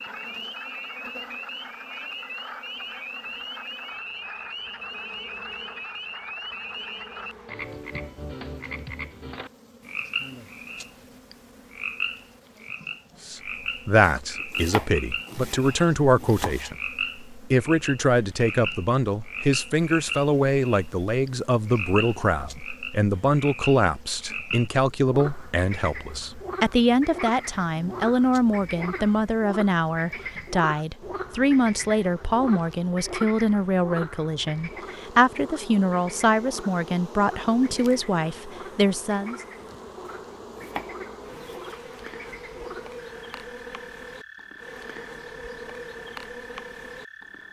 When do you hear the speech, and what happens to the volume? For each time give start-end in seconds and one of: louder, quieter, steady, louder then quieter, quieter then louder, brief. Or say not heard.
13.2-39.4 steady.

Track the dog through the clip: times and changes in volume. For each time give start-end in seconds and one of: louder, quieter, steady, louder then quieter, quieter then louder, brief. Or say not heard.
not heard.